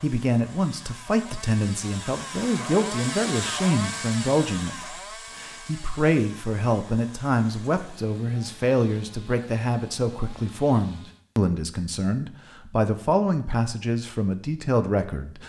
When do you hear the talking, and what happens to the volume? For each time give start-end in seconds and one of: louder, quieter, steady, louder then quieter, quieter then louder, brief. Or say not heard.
0.0-15.4 steady.